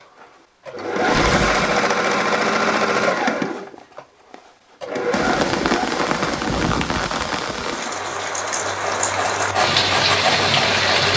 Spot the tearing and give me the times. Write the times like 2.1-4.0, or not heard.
1.0-1.9.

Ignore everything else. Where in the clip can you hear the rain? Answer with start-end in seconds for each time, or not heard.
5.1-11.1.